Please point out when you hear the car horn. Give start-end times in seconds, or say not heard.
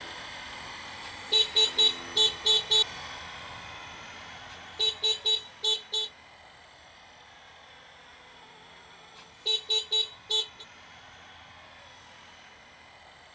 1.1-2.9, 4.5-6.1, 9.2-10.7.